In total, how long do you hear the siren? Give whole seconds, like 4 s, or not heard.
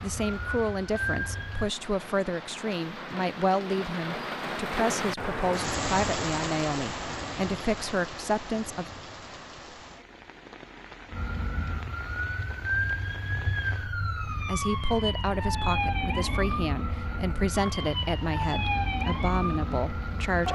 11 s.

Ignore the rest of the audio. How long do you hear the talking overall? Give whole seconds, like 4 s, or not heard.
15 s.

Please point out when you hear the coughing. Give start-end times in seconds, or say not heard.
not heard.